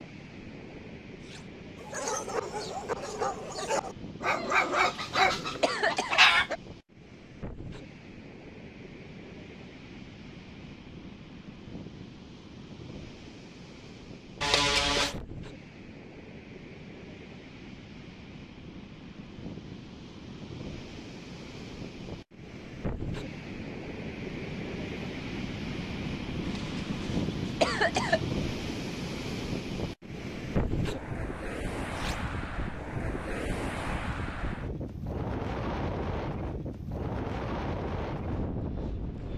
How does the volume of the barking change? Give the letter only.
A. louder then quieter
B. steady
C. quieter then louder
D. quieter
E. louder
A.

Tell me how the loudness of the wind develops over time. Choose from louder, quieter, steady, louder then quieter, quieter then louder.
louder.